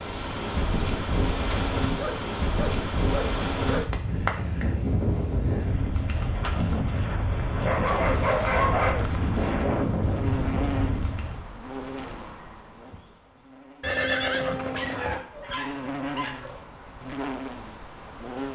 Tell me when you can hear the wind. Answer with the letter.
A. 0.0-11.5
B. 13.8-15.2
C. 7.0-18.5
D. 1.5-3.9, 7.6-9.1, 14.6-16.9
A.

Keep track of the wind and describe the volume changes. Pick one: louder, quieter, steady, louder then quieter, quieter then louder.
steady.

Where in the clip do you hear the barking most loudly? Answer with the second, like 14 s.
9 s.